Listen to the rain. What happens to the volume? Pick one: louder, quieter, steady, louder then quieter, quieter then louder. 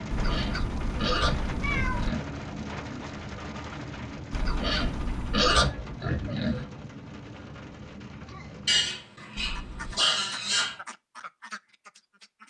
quieter.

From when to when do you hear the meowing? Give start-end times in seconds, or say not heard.
0.1-2.1, 4.3-5.7, 9.3-10.1.